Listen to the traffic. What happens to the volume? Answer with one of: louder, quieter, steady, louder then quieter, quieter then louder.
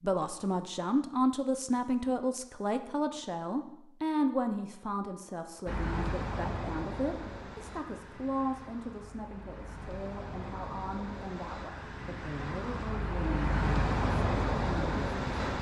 quieter then louder.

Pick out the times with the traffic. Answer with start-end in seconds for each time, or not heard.
5.7-15.5.